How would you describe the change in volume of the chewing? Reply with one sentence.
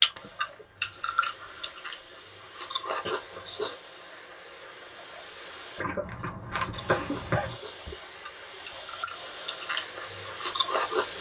The volume of the chewing goes down, then up.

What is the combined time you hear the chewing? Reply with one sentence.
The chewing can be heard for 9 seconds in total.